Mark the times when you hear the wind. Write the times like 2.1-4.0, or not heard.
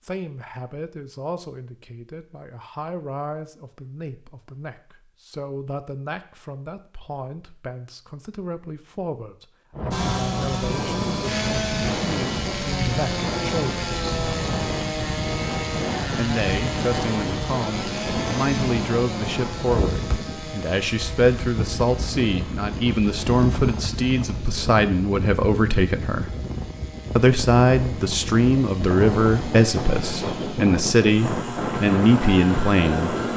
9.7-33.3.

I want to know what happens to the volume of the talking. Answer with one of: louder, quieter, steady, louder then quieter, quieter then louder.
louder.